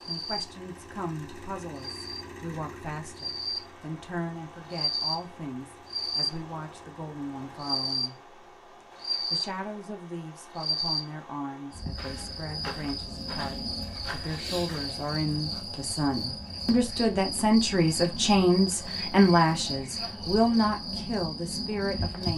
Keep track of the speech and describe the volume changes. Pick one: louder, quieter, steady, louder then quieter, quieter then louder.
louder.